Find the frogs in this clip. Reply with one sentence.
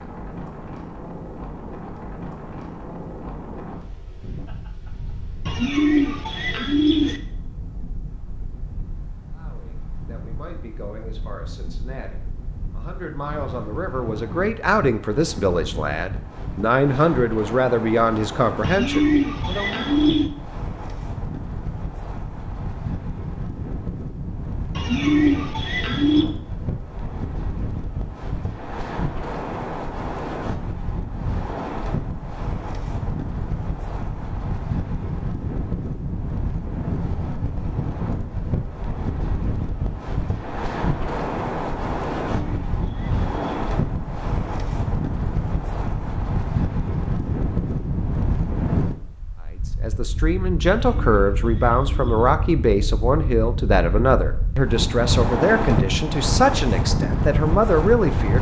You can't hear the frogs here.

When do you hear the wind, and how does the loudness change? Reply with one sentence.
You can hear the wind from 0.0 to 58.3 s, getting louder.